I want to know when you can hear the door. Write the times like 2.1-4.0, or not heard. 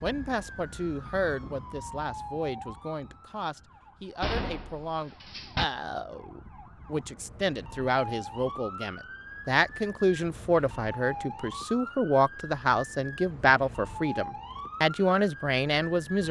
4.2-5.7.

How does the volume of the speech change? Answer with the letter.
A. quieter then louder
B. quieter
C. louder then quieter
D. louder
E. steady
D.